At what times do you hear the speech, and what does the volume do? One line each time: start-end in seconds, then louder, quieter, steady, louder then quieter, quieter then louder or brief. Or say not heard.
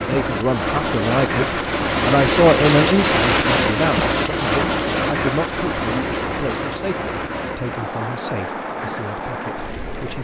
0.1-10.2 quieter.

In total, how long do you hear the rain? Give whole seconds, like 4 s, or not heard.
10 s.